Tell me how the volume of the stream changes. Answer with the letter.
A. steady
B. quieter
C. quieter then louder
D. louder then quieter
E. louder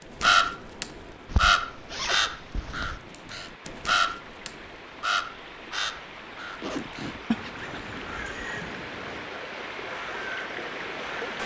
E.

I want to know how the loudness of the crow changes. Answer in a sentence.
The loudness of the crow goes down.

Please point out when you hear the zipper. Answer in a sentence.
The zipper can be heard from 1.2 to 3.0 s and from 6.6 to 8.2 s.